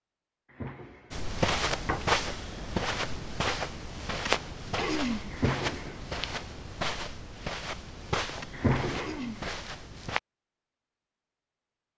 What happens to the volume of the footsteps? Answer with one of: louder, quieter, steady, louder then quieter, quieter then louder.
quieter.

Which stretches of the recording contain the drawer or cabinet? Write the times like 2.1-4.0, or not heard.
0.6-2.1, 5.3-6.5, 8.5-9.4.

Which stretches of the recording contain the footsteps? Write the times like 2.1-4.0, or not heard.
1.1-10.2.